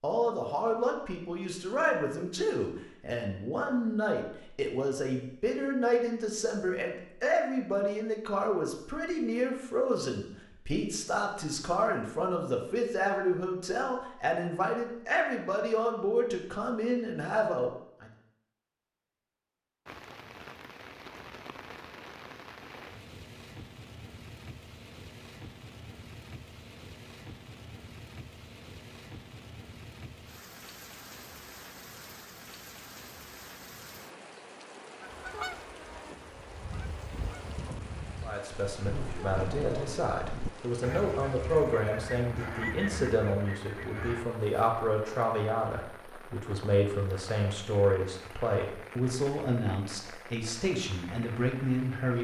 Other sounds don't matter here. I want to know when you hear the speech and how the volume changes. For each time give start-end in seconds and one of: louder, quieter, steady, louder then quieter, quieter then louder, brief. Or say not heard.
0.0-18.1 steady
38.2-52.1 steady.